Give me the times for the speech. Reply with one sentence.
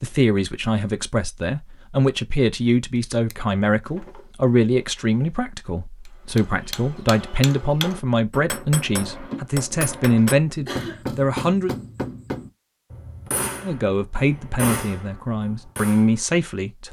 You can hear the speech from 0.0 to 11.7 s and from 13.6 to 16.8 s.